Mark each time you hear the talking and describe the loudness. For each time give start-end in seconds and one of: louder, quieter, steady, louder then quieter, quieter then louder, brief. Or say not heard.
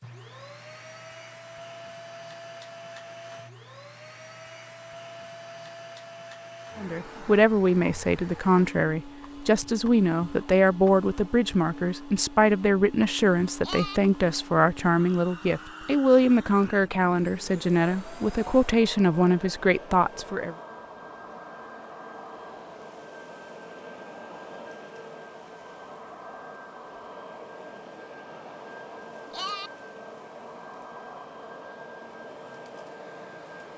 6.8-20.6 steady.